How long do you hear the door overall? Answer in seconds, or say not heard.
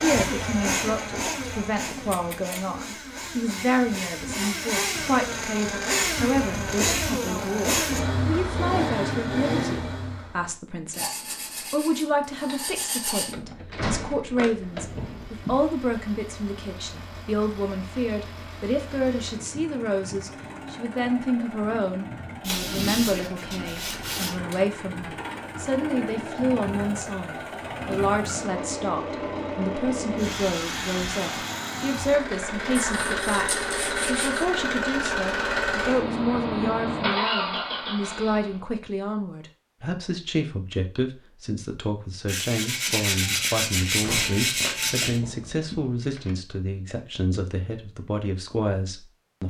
5 s.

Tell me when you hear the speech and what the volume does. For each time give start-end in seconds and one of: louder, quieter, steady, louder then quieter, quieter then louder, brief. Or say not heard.
0.0-49.4 steady.